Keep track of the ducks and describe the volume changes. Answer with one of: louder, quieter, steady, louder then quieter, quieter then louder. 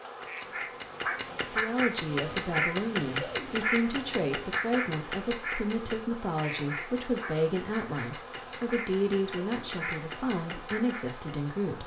quieter.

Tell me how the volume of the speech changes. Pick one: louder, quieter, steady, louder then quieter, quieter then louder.
steady.